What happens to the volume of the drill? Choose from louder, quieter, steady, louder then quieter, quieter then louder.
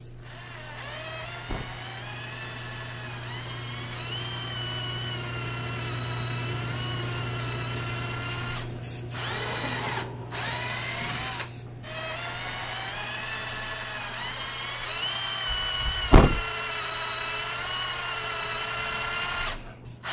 louder.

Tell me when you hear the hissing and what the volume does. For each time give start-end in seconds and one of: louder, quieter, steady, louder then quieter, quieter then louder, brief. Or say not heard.
0.0-20.0 louder then quieter.